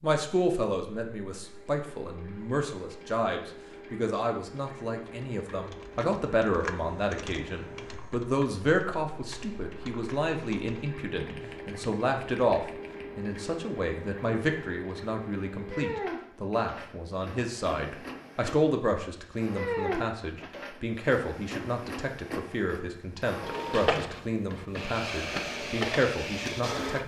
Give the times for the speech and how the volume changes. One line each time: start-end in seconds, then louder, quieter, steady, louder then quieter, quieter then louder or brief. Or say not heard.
0.0-27.0 steady.